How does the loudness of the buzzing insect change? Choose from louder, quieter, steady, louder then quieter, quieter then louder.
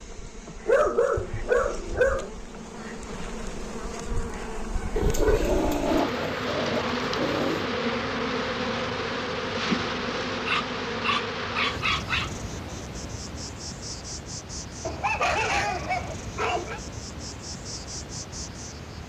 louder then quieter.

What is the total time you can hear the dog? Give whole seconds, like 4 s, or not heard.
8 s.